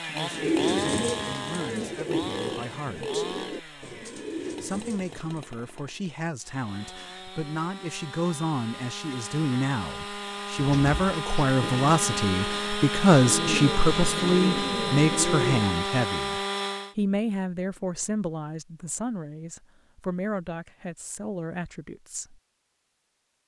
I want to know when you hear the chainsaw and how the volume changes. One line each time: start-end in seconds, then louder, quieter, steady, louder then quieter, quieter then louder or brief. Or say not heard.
0.0-16.9 quieter then louder.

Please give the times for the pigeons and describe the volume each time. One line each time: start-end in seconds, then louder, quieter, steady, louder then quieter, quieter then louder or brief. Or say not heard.
0.3-5.5 quieter
10.8-15.8 quieter then louder.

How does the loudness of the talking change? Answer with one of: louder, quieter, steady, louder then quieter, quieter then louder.
louder then quieter.